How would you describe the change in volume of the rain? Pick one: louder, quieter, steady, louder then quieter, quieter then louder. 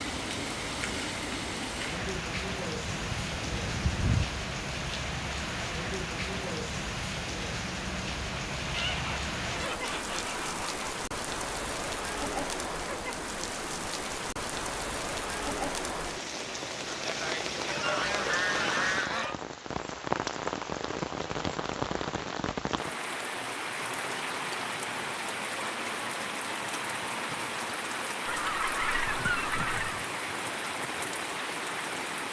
steady.